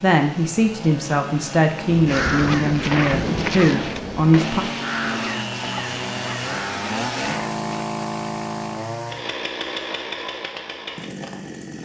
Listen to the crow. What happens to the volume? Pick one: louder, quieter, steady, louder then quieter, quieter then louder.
quieter.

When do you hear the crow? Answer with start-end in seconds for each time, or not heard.
2.0-7.6.